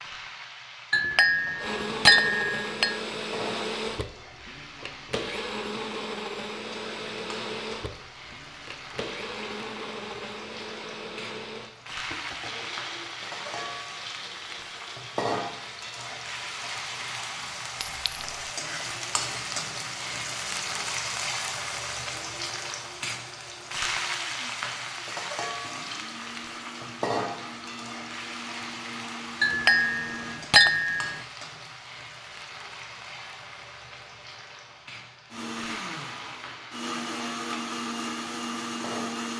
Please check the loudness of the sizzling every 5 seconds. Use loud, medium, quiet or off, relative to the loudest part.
medium, medium, medium, loud, loud, loud, medium, medium.